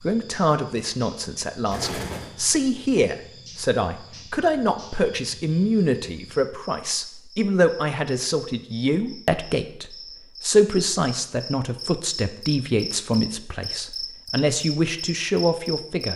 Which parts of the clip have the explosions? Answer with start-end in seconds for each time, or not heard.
1.7-2.4.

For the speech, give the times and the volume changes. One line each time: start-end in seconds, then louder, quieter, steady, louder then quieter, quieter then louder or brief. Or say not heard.
0.0-16.1 steady.